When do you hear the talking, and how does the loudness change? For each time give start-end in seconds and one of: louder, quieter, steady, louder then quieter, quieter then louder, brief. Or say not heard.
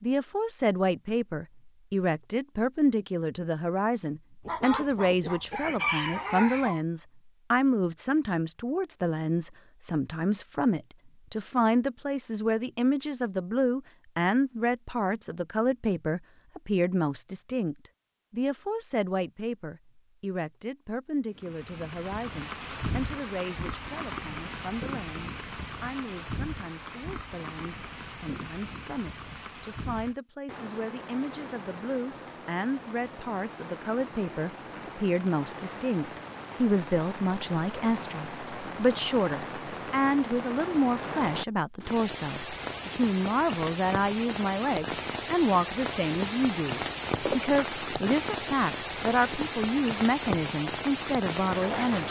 0.0-52.0 quieter then louder.